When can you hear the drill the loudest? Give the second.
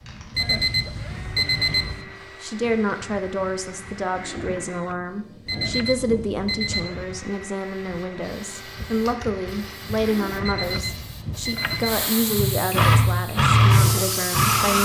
13 s.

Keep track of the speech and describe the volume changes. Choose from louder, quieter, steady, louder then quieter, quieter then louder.
steady.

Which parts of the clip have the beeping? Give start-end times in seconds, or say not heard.
0.3-2.0, 5.5-6.9, 10.4-12.1.